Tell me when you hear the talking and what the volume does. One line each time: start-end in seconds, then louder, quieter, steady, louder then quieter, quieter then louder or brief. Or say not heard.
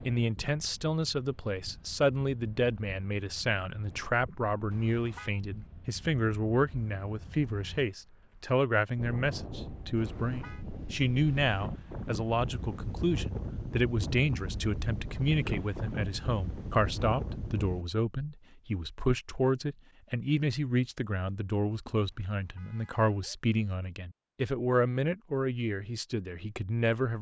0.1-27.1 steady.